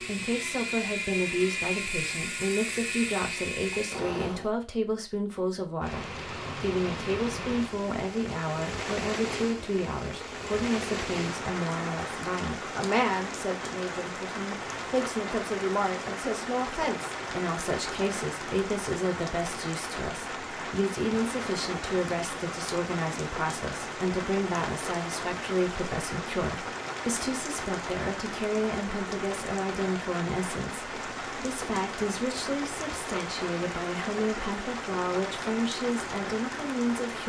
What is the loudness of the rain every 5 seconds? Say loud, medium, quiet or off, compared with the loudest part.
off, loud, loud, loud, loud, loud, loud, loud.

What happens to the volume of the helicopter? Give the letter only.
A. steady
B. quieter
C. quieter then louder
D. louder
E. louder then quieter
A.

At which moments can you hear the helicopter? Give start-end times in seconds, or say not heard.
0.0-4.5.